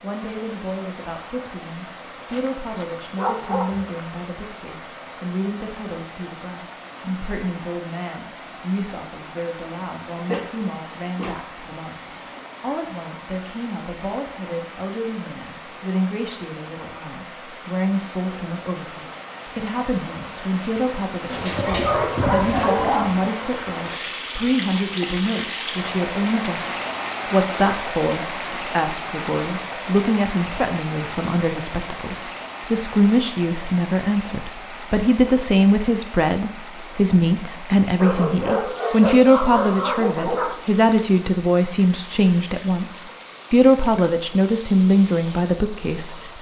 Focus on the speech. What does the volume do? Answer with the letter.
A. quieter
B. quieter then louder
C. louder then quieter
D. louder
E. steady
D.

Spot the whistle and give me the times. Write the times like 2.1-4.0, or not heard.
not heard.